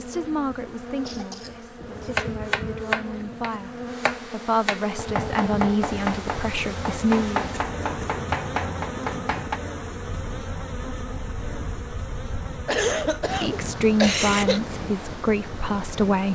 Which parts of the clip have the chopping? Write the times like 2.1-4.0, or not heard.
2.1-9.6.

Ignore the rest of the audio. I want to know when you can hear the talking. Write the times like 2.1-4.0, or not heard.
0.0-7.5, 13.2-16.3.